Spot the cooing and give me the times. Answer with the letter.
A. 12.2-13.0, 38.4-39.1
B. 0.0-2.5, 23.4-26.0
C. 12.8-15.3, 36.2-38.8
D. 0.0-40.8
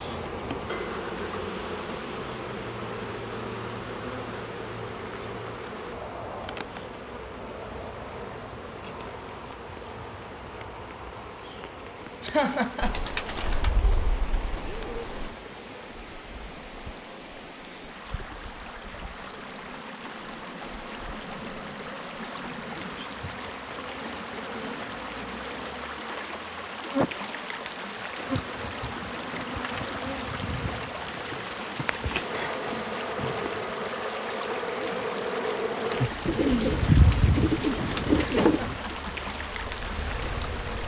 C.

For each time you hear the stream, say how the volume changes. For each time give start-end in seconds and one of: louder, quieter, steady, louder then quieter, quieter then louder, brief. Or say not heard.
0.0-40.8 louder.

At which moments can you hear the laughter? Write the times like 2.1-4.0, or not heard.
12.2-13.0, 38.4-39.1.